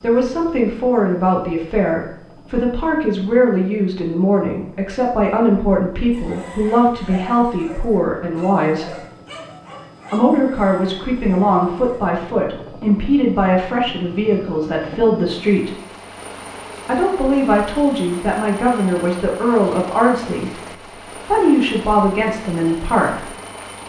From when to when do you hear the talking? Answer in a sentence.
The talking can be heard from 0.0 to 9.0 s, from 10.1 to 15.8 s and from 16.9 to 23.3 s.